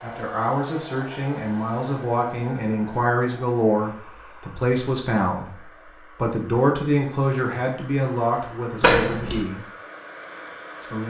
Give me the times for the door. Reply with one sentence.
You can hear the door from 8.8 to 9.4 s.